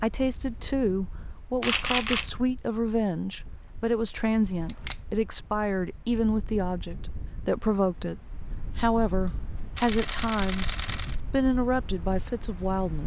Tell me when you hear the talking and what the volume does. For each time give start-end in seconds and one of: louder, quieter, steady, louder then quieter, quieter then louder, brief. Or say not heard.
0.0-13.0 steady.